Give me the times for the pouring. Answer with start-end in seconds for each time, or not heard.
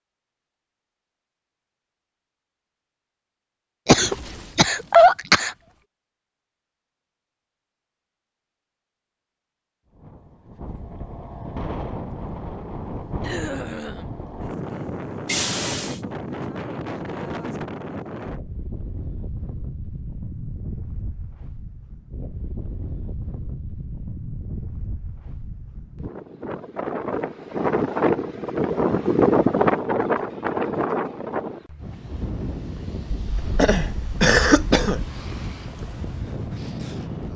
15.2-16.0.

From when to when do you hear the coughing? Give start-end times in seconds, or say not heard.
3.9-5.5, 13.2-14.2, 33.1-35.1.